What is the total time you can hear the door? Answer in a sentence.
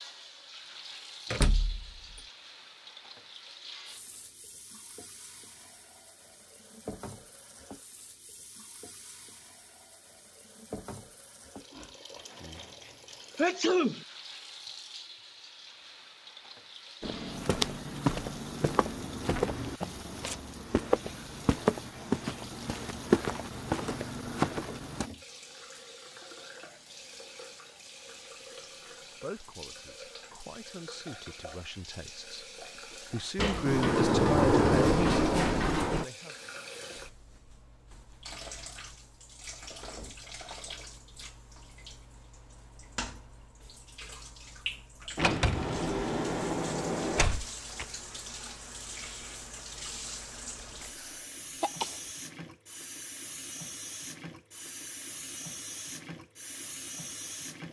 You can hear the door for 6 seconds altogether.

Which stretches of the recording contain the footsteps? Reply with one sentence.
You can hear the footsteps from 17.0 to 25.1 s.